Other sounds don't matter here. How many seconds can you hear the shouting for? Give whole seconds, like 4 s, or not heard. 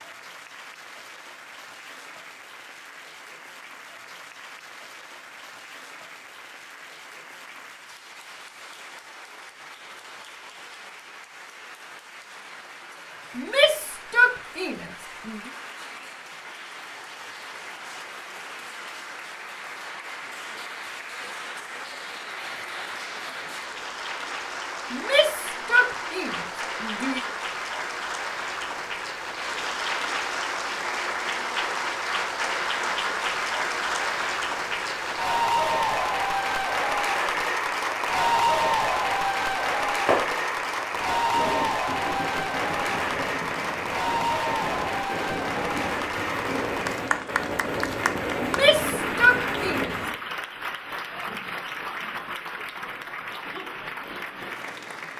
6 s.